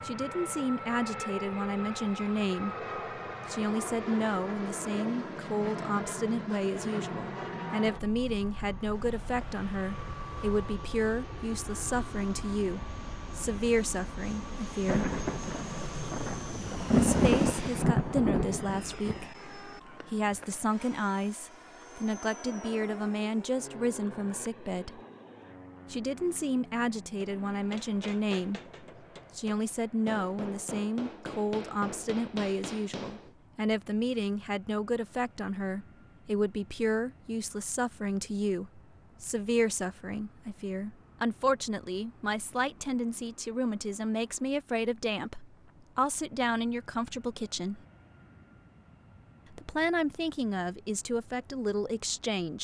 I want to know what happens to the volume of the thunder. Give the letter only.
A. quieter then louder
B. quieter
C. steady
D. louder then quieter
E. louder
D.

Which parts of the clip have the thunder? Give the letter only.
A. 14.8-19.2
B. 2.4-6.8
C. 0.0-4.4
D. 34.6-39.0
A.